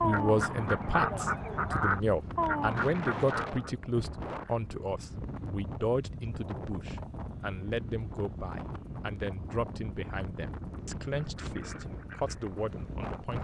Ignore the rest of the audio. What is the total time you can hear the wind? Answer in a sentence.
You can hear the wind for 13 seconds altogether.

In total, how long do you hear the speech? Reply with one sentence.
The speech can be heard for 13 seconds in total.